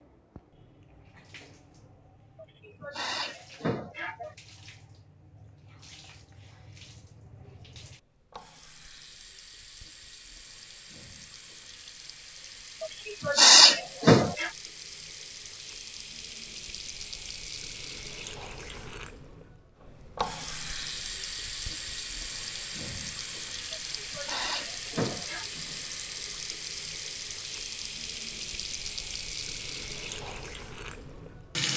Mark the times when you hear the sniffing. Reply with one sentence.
The sniffing can be heard from 2.4 to 4.3 s, from 12.8 to 14.5 s and from 23.7 to 25.4 s.